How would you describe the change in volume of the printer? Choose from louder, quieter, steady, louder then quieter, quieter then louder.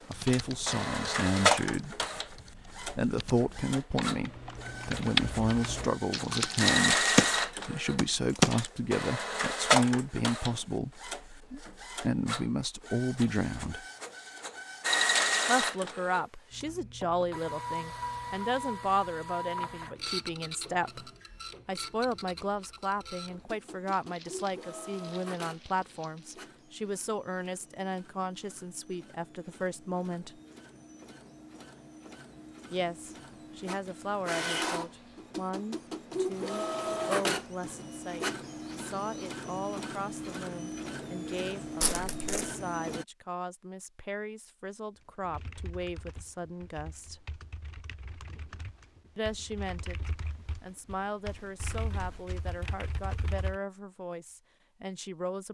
quieter then louder.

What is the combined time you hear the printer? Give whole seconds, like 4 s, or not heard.
43 s.